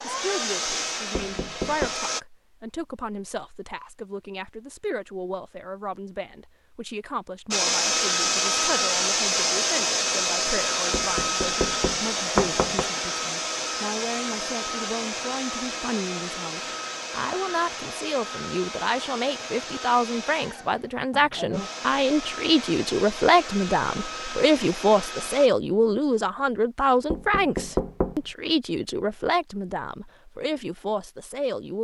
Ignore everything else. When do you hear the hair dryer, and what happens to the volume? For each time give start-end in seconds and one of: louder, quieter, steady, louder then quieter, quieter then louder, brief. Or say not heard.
0.0-2.2 brief
7.5-25.5 quieter.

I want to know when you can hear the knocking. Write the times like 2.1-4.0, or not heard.
1.1-1.9, 10.9-12.8, 27.1-28.2.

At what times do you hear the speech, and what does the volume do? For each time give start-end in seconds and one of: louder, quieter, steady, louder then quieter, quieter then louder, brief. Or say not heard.
0.0-31.7 louder.